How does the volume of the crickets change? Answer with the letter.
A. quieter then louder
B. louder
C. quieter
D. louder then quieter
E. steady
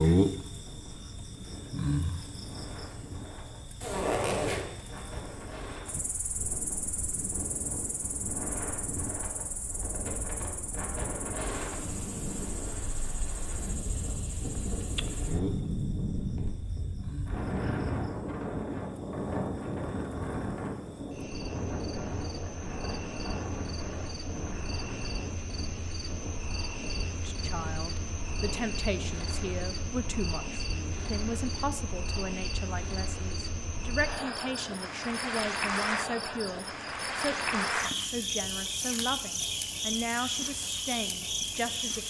A.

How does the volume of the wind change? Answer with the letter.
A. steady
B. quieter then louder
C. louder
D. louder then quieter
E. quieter
D.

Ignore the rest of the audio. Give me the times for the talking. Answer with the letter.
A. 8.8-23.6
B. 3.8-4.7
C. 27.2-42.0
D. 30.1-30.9
C.